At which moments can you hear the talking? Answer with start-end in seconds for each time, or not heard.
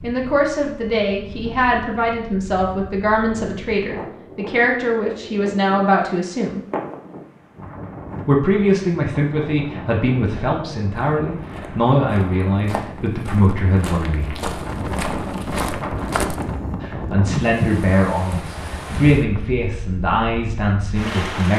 0.0-6.6, 8.2-14.3, 16.8-21.5.